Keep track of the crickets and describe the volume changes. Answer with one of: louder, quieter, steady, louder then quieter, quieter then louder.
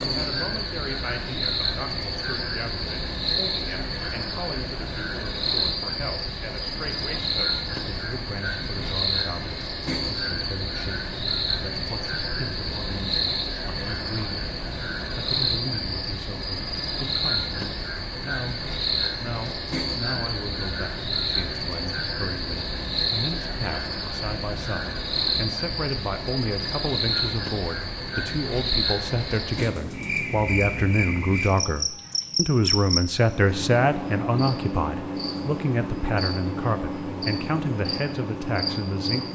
steady.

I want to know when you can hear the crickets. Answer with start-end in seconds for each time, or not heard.
0.0-39.3.